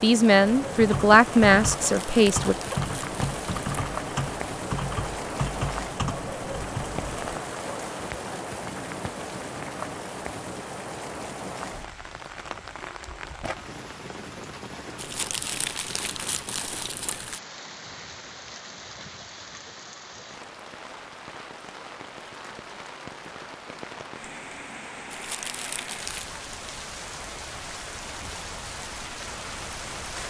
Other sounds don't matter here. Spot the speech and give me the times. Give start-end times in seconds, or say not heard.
0.0-2.5.